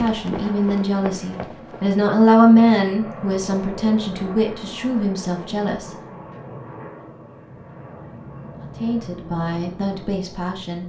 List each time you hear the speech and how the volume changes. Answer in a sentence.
You can hear the speech from 0.0 to 5.9 s, getting louder then quieter; and briefly from 8.8 to 10.8 s.